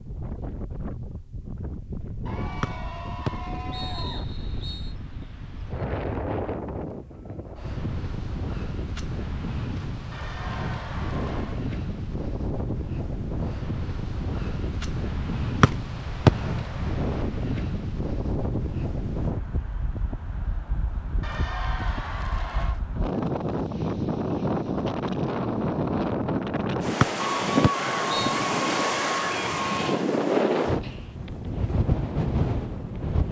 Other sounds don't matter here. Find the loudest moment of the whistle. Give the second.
16 s.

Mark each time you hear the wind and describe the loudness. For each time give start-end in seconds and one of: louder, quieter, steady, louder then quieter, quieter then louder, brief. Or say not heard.
0.0-33.2 louder.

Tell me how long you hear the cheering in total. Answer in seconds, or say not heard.
8 s.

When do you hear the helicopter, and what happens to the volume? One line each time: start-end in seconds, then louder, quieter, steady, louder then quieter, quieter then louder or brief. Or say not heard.
not heard.